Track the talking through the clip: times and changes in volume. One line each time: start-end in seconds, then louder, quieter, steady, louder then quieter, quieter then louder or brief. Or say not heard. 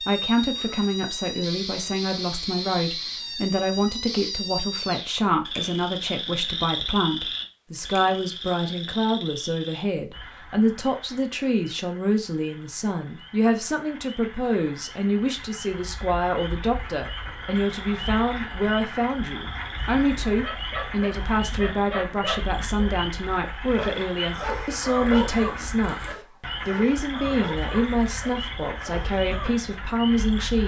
0.0-30.6 steady.